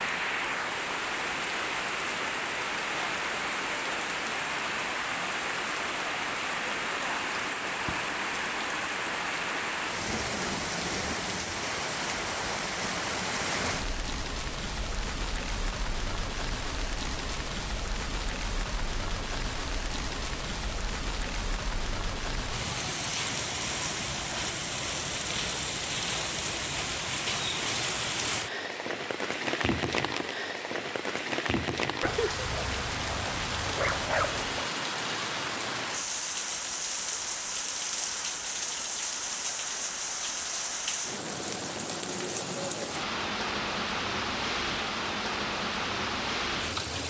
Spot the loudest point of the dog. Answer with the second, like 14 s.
34 s.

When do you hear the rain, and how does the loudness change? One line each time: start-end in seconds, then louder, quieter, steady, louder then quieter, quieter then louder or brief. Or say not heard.
0.0-47.0 steady.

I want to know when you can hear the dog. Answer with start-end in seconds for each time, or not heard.
32.0-34.6.